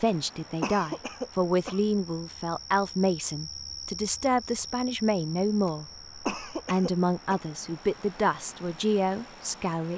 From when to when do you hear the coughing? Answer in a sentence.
You can hear the coughing from 0.6 to 1.8 s and from 6.2 to 7.4 s.